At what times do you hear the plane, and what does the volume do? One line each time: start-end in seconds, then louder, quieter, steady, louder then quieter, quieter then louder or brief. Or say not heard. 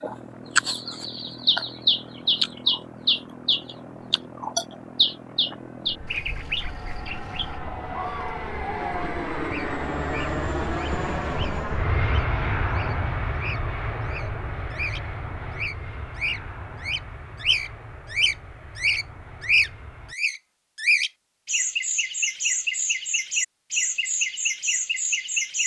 0.0-20.1 louder then quieter.